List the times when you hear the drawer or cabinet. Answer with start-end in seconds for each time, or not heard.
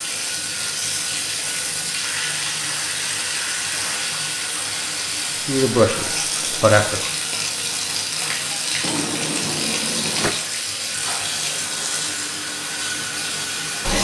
8.8-10.3.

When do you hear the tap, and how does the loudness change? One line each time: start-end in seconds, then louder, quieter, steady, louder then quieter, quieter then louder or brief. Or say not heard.
0.0-13.9 steady.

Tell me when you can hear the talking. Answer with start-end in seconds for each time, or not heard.
5.3-7.1.